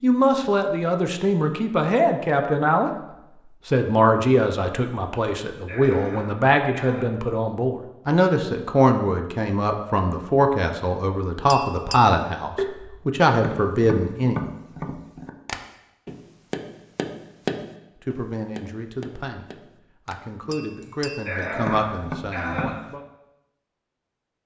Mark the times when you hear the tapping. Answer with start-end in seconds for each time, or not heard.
11.5-22.9.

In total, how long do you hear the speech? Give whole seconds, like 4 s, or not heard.
18 s.